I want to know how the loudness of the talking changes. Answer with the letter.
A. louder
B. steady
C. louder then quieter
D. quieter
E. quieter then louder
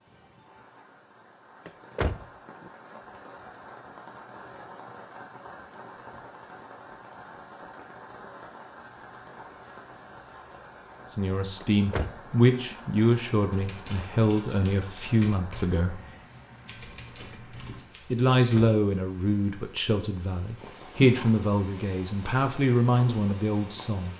B.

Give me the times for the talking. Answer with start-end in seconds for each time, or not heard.
11.2-16.0, 18.1-24.1.